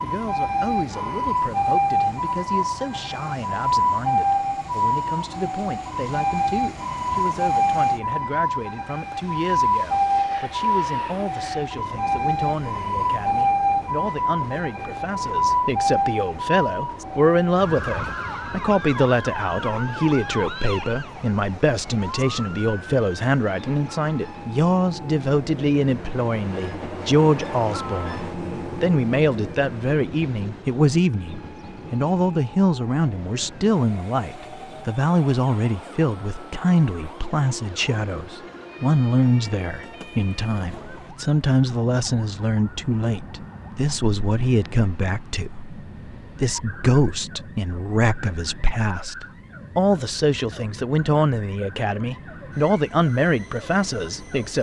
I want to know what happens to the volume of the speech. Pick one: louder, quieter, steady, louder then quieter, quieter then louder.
louder.